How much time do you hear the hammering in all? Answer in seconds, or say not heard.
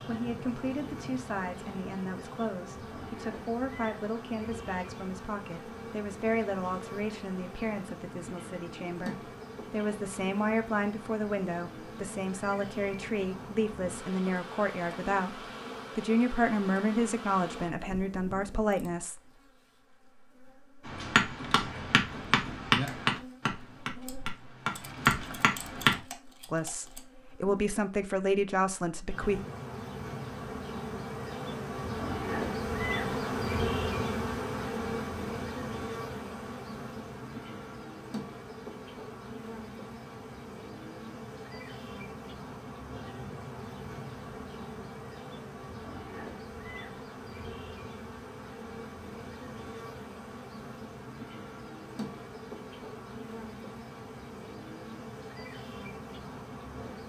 5 s.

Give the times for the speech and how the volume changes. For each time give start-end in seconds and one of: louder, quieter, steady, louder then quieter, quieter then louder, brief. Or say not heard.
0.0-19.4 louder
26.5-29.4 brief.